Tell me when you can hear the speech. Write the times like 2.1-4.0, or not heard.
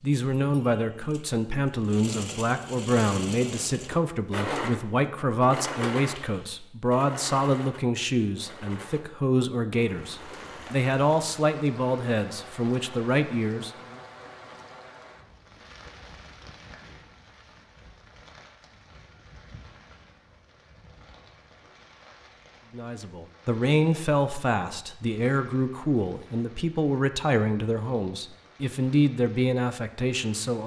0.0-14.0, 22.7-30.6.